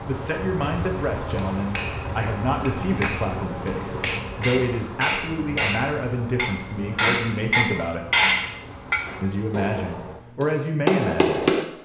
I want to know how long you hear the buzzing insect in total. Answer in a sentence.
You can hear the buzzing insect for 10 seconds altogether.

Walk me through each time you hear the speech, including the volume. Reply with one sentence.
You can hear the speech from 0.0 to 8.1 s, at a steady volume; and briefly from 9.2 to 11.5 s.